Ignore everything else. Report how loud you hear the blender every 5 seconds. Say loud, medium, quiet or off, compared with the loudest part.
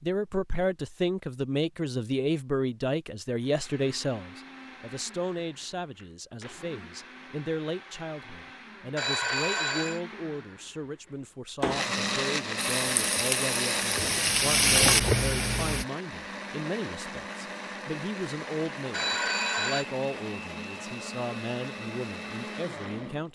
quiet, quiet, loud, medium, medium.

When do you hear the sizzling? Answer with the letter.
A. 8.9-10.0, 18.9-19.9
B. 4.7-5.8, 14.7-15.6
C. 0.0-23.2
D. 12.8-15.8
D.